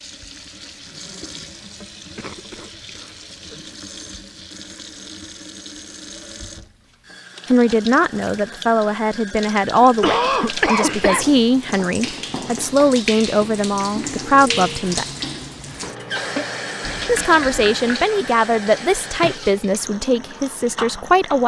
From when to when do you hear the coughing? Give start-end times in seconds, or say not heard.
2.1-3.8, 9.8-11.2, 16.8-17.9.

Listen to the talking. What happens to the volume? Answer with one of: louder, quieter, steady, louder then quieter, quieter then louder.
steady.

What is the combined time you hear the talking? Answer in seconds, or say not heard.
12 s.